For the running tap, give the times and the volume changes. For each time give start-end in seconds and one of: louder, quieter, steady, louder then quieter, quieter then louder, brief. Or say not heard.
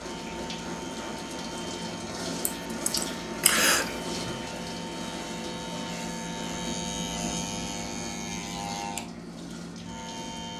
0.0-10.5 quieter.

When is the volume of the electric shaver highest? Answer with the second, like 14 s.
7 s.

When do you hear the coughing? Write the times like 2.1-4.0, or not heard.
2.5-4.0.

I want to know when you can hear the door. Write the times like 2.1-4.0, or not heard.
not heard.